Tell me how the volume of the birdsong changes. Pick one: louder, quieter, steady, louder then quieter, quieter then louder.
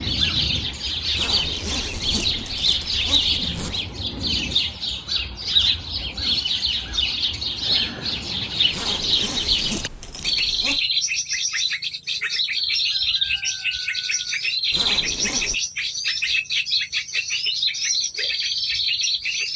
steady.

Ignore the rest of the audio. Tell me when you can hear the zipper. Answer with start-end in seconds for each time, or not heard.
1.1-3.8, 8.7-10.8, 14.7-15.6.